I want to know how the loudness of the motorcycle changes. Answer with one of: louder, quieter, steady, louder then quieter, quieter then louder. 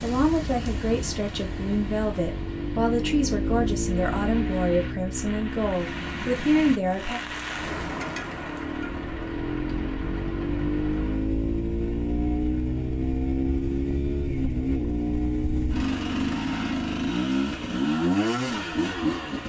quieter then louder.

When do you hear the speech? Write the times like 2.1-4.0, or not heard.
0.0-7.2.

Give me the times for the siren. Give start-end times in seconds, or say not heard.
not heard.